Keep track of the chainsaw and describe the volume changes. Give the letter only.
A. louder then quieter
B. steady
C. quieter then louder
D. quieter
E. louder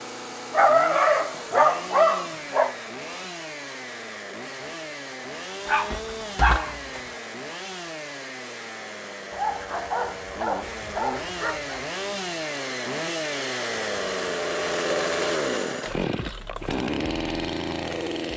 E.